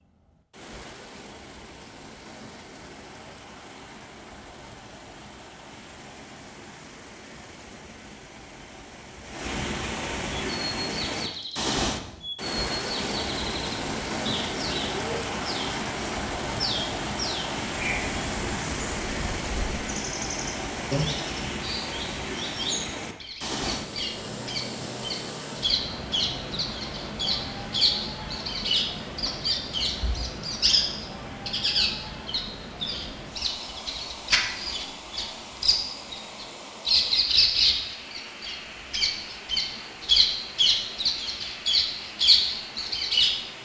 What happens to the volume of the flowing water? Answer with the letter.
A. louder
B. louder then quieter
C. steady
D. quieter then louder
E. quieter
B.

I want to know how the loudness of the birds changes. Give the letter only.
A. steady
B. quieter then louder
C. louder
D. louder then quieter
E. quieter
C.